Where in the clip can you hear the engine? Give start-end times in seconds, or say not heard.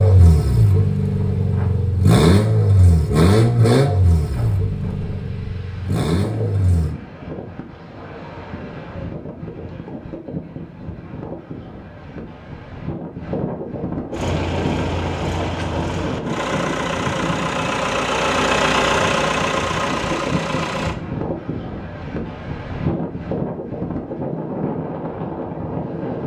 0.0-7.0, 14.1-20.9.